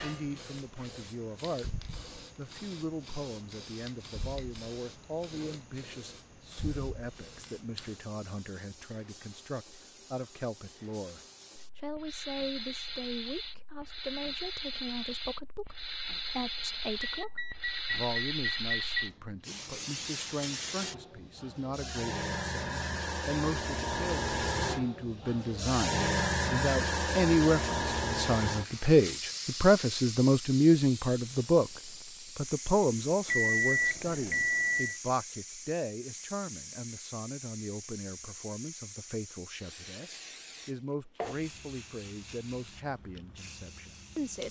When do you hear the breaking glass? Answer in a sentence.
The breaking glass can't be heard in this clip.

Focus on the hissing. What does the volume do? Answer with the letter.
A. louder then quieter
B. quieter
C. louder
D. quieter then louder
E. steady
A.